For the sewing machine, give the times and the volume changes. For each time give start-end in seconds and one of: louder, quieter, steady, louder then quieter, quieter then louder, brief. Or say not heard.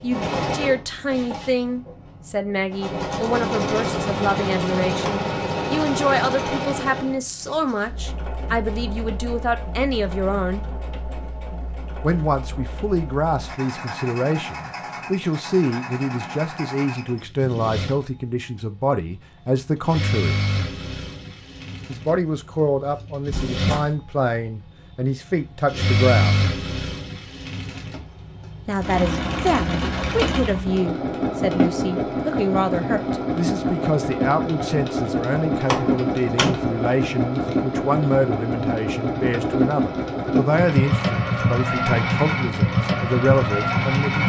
0.0-44.2 quieter then louder.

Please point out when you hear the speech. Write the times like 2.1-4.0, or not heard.
0.0-10.7, 12.0-20.4, 21.9-26.4, 28.6-44.2.